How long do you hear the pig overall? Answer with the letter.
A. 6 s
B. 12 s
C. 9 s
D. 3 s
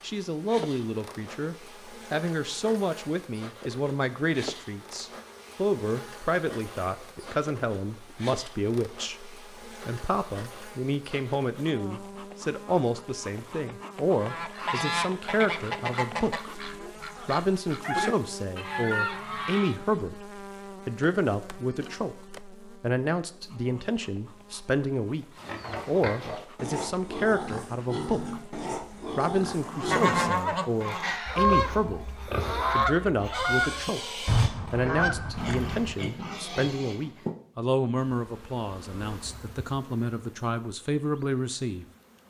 B.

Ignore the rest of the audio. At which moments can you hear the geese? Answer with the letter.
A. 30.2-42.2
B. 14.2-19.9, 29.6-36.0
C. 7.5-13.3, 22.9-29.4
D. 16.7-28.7
B.